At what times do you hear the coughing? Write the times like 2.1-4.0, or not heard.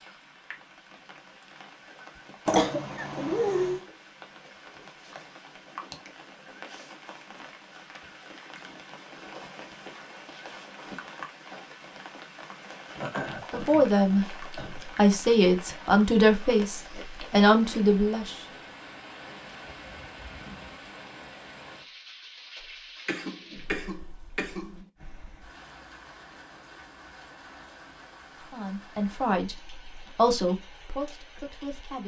2.5-3.9, 12.9-14.8, 23.1-24.9.